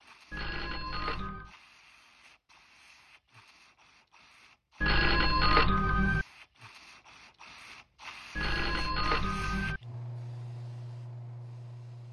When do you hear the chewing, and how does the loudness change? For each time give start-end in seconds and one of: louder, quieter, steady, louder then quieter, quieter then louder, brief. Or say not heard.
not heard.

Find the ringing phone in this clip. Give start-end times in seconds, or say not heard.
0.3-1.5, 4.8-6.2, 8.3-9.8.